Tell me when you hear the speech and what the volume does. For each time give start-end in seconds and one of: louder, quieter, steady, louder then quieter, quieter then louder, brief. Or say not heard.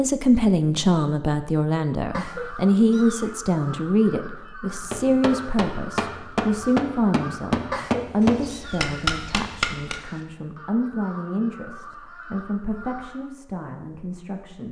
0.0-14.6 quieter.